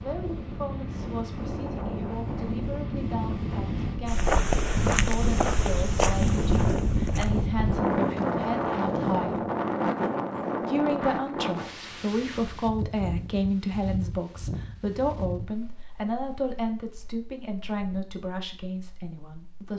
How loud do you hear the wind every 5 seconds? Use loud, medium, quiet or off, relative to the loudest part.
medium, loud, medium, quiet.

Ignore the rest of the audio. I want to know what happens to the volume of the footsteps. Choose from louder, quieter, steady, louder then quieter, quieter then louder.
quieter.